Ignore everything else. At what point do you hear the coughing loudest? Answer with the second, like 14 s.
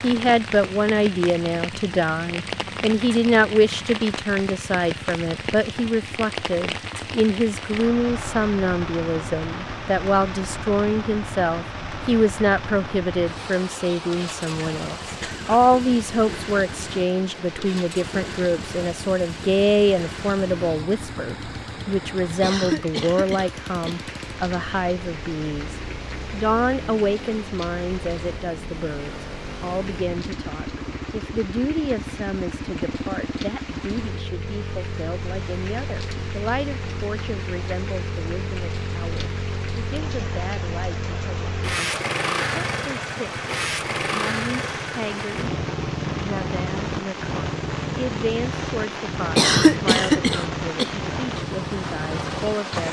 50 s.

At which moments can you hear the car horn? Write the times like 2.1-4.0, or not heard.
not heard.